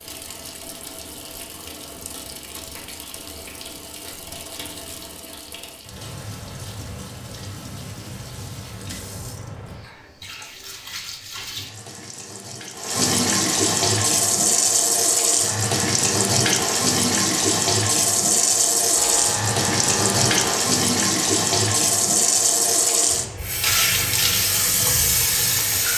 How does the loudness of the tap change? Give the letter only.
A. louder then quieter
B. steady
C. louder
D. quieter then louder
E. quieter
C.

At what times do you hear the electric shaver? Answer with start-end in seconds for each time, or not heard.
18.9-20.6.